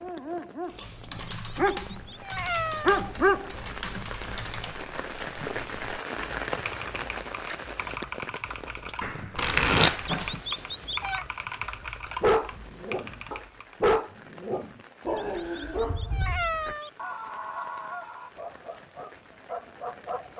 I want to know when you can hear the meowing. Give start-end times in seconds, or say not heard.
1.5-3.0, 10.1-11.2, 15.2-16.9.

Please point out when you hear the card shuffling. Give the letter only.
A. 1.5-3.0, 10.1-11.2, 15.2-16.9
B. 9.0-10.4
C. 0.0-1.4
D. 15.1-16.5
B.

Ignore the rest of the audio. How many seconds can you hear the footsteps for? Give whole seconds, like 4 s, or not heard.
not heard.